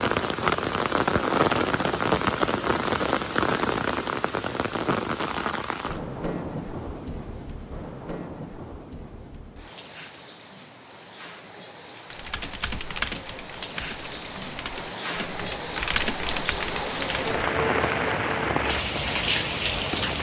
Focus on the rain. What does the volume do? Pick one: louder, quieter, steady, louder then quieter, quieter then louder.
quieter then louder.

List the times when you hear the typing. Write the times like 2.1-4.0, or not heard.
12.1-17.5.